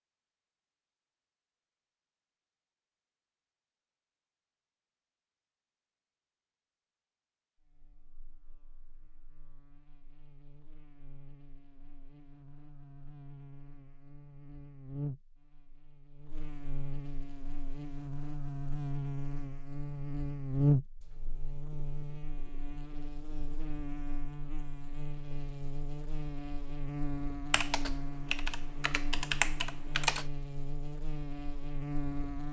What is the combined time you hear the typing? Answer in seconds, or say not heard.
3 s.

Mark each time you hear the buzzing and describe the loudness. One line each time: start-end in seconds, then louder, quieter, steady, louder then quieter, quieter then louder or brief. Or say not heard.
7.6-32.4 louder then quieter.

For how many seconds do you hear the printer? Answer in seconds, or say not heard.
not heard.